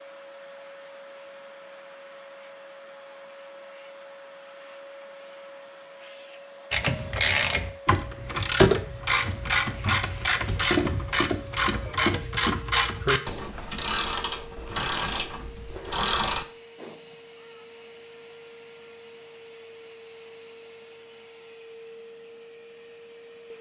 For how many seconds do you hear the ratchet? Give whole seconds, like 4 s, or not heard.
10 s.